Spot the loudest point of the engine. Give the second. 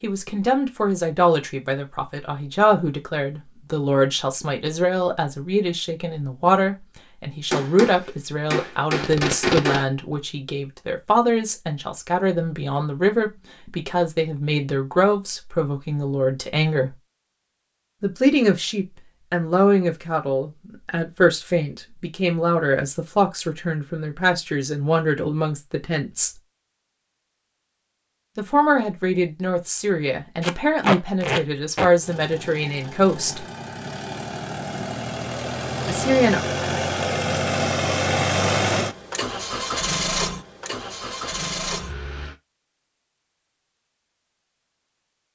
38 s.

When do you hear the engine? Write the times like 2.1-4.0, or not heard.
32.0-42.4.